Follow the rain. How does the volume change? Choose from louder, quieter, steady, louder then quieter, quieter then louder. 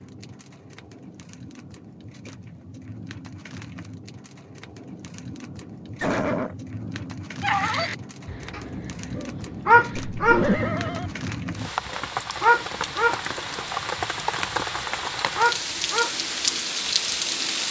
louder.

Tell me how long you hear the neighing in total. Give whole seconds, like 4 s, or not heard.
2 s.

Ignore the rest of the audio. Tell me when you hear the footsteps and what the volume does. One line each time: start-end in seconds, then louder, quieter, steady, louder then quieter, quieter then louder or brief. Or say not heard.
not heard.